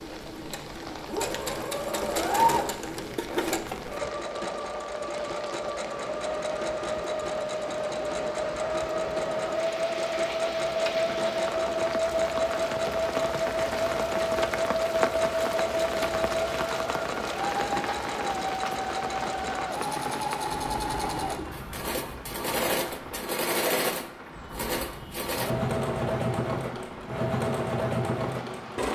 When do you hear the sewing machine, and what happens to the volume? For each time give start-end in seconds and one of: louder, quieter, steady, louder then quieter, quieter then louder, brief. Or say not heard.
0.0-28.9 steady.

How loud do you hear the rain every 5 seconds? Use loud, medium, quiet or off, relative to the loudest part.
medium, medium, loud, loud, medium, medium.